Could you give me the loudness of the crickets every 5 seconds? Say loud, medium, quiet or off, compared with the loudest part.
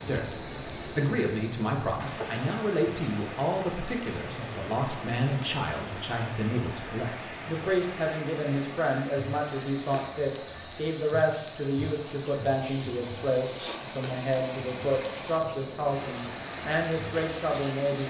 medium, medium, loud, loud.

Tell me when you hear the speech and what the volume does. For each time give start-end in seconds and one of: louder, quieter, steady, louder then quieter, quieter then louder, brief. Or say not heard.
0.0-18.0 steady.